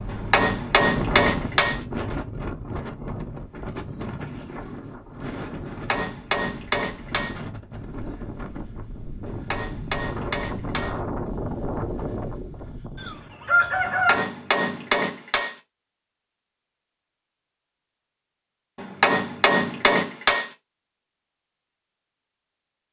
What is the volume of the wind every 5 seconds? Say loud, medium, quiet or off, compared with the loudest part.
loud, medium, loud, off, off.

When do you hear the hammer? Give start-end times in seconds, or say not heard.
0.1-1.8, 5.7-7.3, 9.2-10.9, 13.8-15.6, 18.8-20.5.